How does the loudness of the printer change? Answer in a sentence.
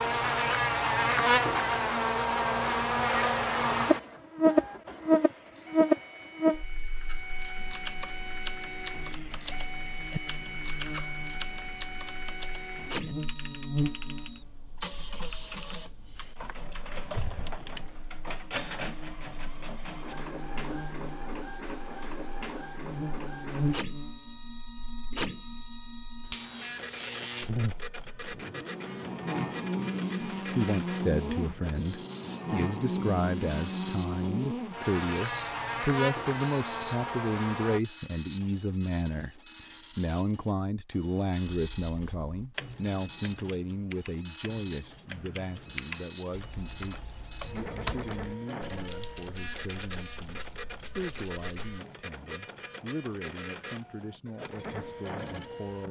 The loudness of the printer stays about the same.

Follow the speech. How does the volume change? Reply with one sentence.
The volume of the speech goes down.